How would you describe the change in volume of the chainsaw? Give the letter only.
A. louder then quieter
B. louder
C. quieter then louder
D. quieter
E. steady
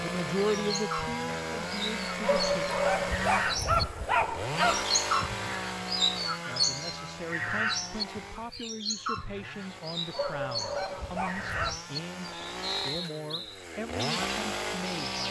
C.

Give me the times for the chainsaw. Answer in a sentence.
You can hear the chainsaw from 0.0 to 15.2 s.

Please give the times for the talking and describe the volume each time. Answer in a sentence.
The talking can be heard briefly from 0.0 to 2.6 s; and from 6.5 to 15.2 s, at a steady volume.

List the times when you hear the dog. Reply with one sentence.
The dog can be heard from 2.2 to 4.8 s and from 10.1 to 11.8 s.